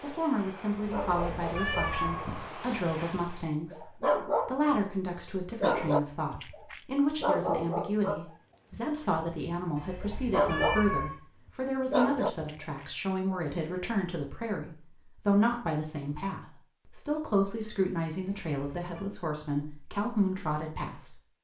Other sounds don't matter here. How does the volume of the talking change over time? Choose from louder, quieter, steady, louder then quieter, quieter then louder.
steady.